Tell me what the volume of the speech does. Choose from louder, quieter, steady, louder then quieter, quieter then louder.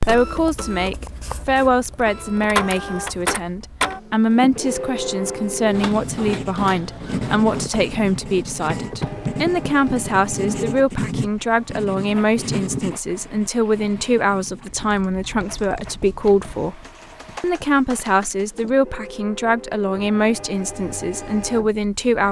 steady.